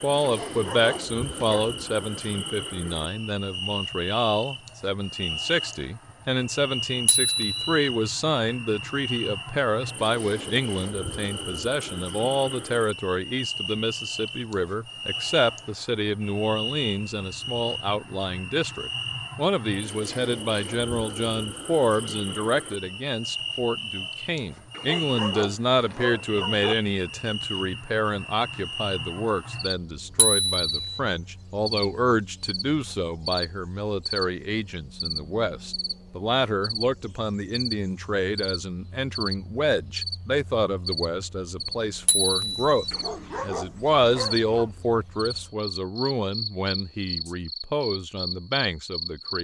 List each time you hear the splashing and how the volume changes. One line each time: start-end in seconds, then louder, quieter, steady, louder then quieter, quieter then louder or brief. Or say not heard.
not heard.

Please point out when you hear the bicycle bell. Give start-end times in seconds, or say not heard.
7.0-7.8, 30.1-31.0, 42.0-42.8.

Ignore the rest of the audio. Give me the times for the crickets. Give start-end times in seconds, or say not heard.
0.0-49.4.